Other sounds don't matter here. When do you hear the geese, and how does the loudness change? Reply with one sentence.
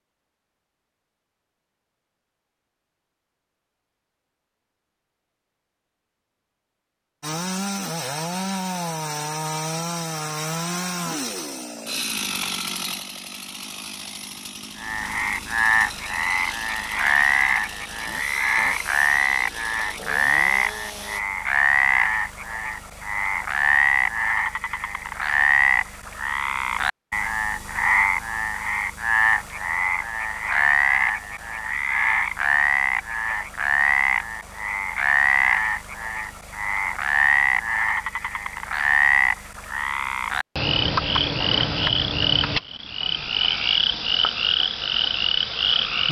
The geese can't be heard in this clip.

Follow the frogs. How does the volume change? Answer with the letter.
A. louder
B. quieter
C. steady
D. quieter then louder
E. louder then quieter
C.